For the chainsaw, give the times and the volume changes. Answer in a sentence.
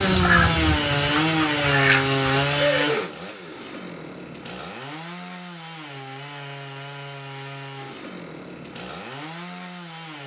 You can hear the chainsaw from 0.0 to 10.2 s, getting quieter.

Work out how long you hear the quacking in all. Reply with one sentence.
The quacking can be heard for 3 seconds in total.